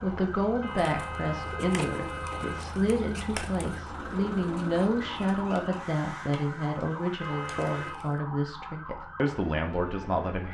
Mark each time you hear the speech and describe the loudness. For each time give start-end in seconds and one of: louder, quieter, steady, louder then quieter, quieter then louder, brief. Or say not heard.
0.0-10.4 steady.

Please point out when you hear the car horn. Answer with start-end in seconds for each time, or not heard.
0.6-2.6, 7.2-8.0.